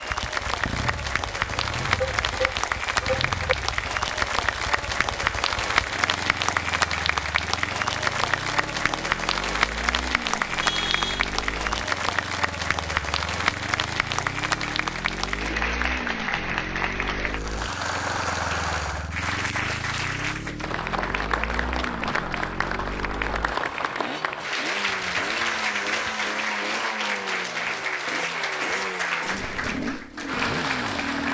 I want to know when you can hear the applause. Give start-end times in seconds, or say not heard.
0.0-31.2.